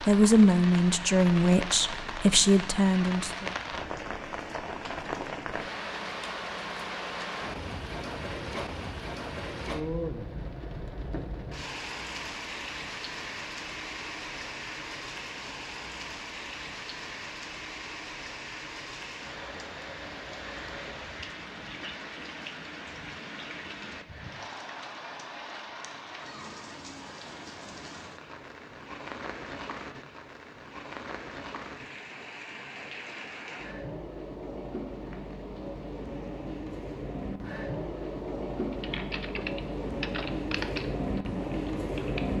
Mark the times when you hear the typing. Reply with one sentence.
The typing can be heard from 38.7 to 42.2 s.